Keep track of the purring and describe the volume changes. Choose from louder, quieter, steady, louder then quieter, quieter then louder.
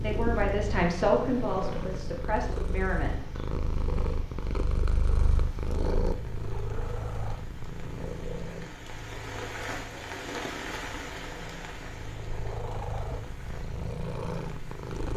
quieter then louder.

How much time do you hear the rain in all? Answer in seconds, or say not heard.
15 s.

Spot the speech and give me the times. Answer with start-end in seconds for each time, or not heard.
0.0-3.3.